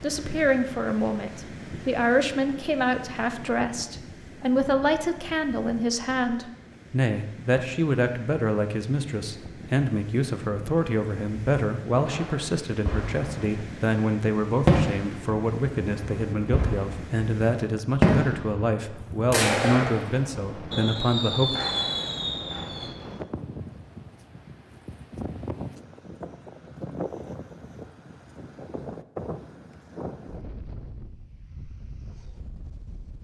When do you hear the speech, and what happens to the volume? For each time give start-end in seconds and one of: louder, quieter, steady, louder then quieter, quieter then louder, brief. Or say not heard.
0.0-21.6 steady.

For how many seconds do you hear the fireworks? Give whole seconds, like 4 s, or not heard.
8 s.